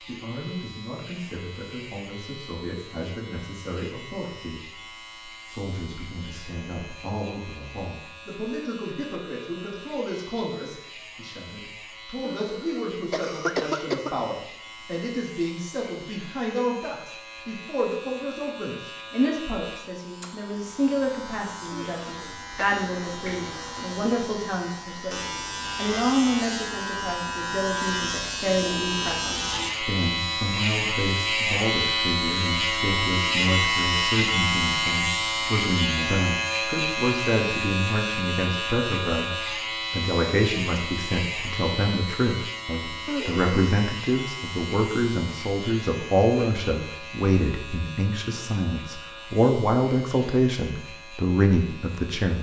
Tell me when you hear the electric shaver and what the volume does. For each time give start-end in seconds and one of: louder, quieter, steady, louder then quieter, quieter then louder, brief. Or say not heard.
0.0-52.3 louder then quieter.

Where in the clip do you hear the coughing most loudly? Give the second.
14 s.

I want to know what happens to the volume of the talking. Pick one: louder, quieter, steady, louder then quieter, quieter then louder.
louder.